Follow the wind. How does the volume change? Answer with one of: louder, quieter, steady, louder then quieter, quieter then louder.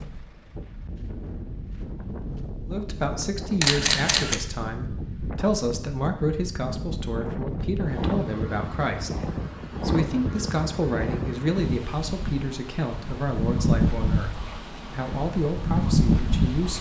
louder.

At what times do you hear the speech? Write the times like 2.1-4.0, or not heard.
2.6-16.7.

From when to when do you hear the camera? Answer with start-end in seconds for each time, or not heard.
3.6-4.4.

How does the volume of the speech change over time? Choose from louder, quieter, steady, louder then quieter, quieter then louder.
steady.